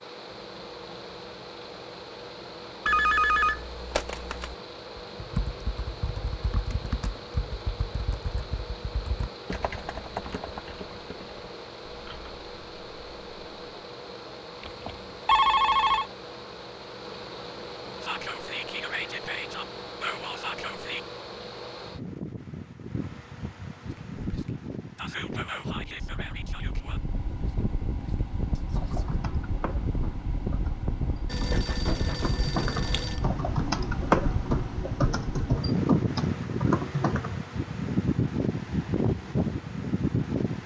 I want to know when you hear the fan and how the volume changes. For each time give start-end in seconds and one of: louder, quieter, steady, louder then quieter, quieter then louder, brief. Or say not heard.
0.0-40.6 louder.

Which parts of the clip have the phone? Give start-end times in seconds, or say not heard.
2.9-4.5, 14.6-16.1, 31.2-33.2.